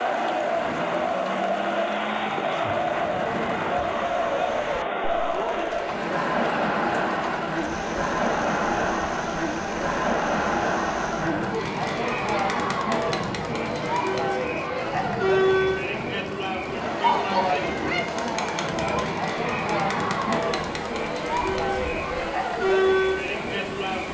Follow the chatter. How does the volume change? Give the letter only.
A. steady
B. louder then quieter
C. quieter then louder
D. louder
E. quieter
A.